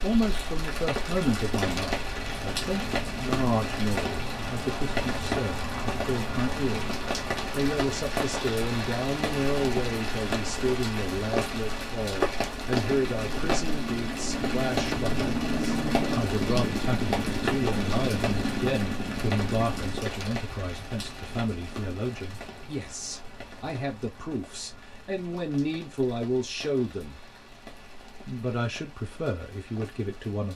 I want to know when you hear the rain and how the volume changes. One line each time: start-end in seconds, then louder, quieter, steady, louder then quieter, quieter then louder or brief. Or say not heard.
0.0-30.5 quieter.